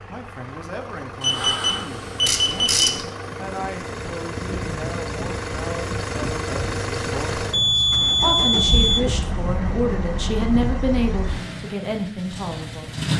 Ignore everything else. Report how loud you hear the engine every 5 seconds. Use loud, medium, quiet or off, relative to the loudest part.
medium, loud, loud.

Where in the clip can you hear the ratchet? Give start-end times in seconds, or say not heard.
2.2-3.1.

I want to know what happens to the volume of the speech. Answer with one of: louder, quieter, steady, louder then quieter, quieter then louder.
louder.